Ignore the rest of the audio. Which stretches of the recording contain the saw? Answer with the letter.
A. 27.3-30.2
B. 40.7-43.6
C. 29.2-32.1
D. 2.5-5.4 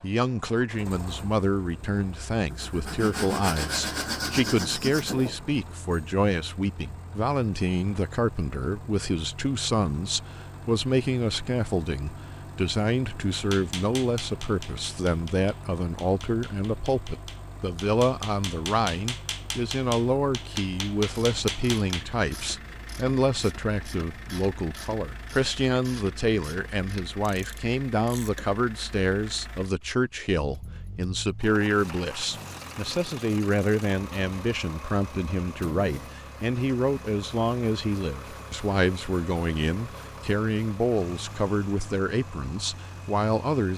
D.